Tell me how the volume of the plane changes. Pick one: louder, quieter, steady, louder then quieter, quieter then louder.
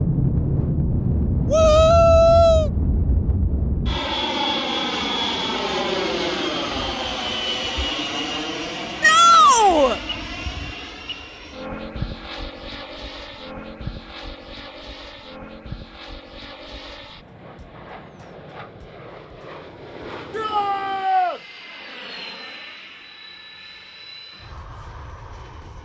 quieter.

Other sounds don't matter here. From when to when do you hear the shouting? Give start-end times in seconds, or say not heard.
1.5-2.7, 9.0-10.0, 20.3-21.4.